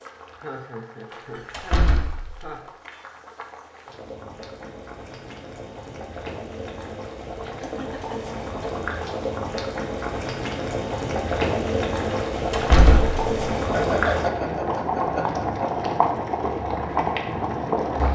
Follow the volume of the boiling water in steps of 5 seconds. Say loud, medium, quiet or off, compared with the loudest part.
quiet, medium, loud, loud.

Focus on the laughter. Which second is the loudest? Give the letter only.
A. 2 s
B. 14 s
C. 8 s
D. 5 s
B.